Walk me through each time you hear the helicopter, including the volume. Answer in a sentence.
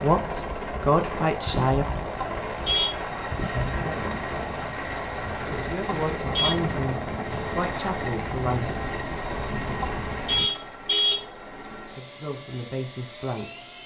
The helicopter can be heard from 0.0 to 13.8 s, getting quieter.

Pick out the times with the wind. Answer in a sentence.
You can hear the wind from 0.1 to 10.5 s.